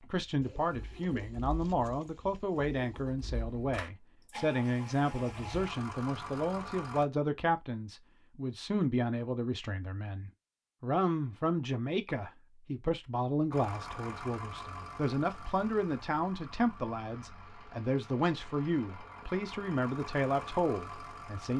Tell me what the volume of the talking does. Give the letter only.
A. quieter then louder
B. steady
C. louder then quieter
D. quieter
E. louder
B.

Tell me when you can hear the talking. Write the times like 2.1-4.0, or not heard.
0.0-21.5.